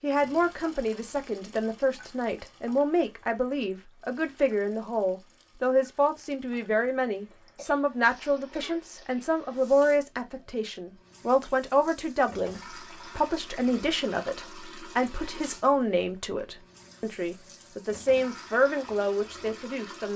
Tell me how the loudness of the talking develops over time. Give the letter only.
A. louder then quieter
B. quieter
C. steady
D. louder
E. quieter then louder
C.